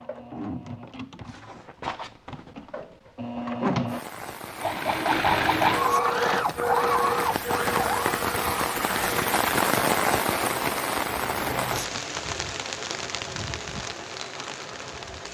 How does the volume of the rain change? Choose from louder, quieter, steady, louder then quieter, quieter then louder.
louder then quieter.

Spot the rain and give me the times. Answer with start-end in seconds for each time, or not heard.
3.9-15.2.